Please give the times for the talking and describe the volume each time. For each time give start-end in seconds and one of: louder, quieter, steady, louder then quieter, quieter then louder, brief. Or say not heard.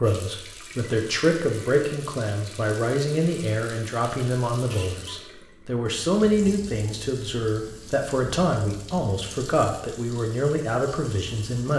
0.0-11.7 steady.